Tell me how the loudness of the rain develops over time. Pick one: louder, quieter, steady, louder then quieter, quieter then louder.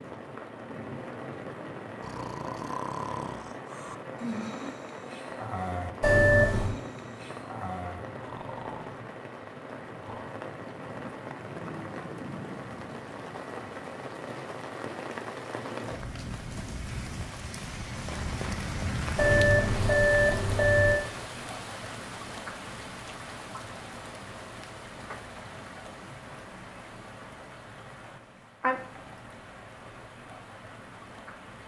steady.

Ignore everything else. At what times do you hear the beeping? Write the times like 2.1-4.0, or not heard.
6.0-6.8, 19.1-21.0.